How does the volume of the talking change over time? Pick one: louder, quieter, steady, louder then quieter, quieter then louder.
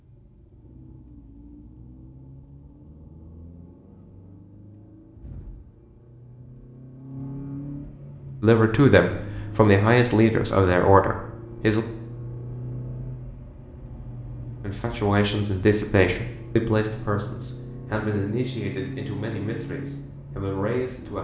quieter.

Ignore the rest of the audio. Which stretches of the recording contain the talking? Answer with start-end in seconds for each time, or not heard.
8.4-11.8, 14.6-21.1.